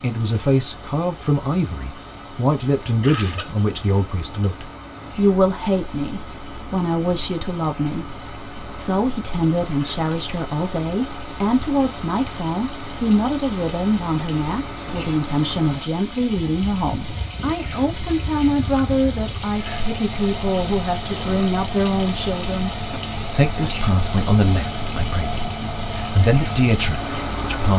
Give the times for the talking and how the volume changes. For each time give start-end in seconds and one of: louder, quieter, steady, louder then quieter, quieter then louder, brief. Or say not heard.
0.0-27.7 steady.